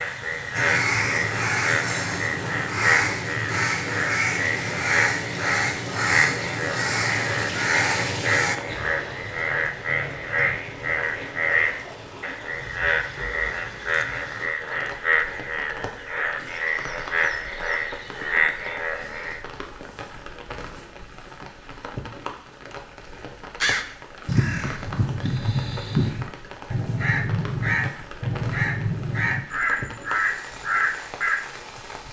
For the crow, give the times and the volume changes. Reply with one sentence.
The crow can be heard from 0.6 to 8.6 s, at a steady volume; and from 23.6 to 31.4 s, at a steady volume.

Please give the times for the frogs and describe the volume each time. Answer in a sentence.
You can hear the frogs from 0.0 to 19.4 s, at a steady volume.